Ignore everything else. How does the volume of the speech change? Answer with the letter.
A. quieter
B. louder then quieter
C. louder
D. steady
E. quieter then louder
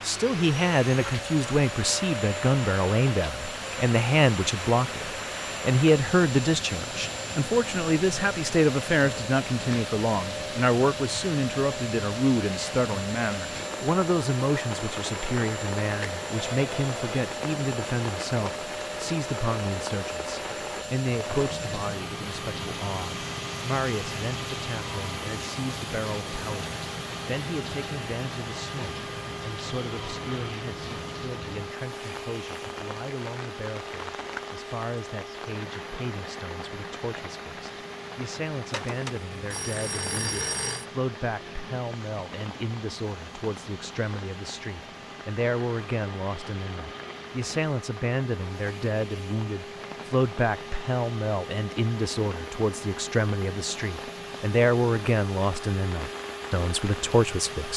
E.